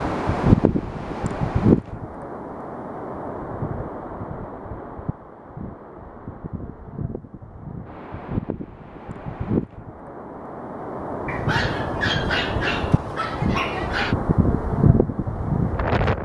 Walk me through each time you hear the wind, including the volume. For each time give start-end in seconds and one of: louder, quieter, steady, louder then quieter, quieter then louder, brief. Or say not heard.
0.0-16.2 quieter then louder.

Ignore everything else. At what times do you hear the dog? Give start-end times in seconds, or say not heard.
11.2-14.2.